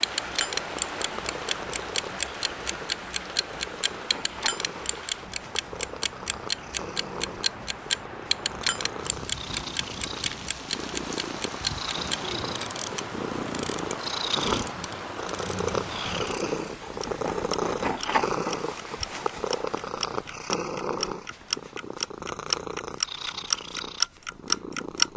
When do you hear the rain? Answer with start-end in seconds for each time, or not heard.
0.0-16.4.